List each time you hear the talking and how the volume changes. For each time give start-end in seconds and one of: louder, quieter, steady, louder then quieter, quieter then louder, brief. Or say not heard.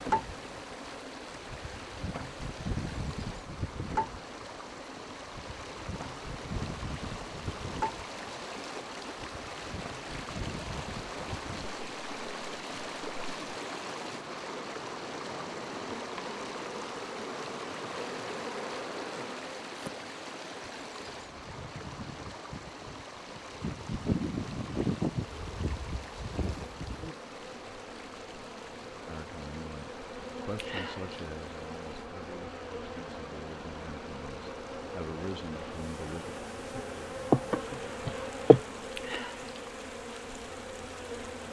29.1-36.4 quieter then louder.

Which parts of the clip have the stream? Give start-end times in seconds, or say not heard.
0.0-41.4.